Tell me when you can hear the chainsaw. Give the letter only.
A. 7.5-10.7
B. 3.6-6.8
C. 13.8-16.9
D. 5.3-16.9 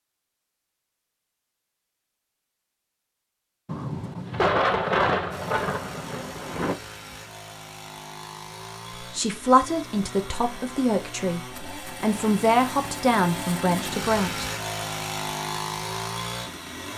D.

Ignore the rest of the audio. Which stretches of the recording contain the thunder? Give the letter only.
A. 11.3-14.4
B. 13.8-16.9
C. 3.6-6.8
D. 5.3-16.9
C.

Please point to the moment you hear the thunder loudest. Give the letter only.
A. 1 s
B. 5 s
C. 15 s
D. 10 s
B.